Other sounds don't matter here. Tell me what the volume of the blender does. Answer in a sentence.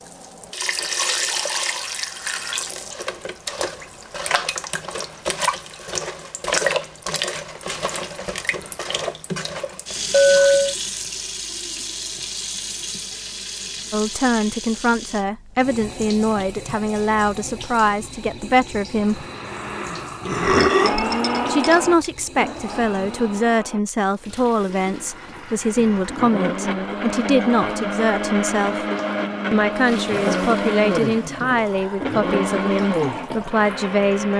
The volume of the blender goes down, then up.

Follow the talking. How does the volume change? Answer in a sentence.
The volume of the talking stays about the same.